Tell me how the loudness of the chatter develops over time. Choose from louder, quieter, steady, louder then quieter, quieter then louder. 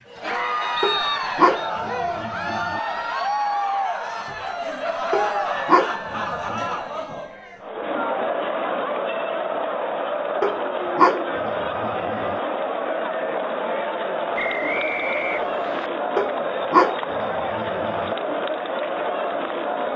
steady.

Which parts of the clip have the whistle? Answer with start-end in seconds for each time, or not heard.
0.8-1.7, 14.3-15.9.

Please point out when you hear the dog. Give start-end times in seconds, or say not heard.
0.8-2.8, 5.1-6.7, 10.4-12.4, 16.1-18.1.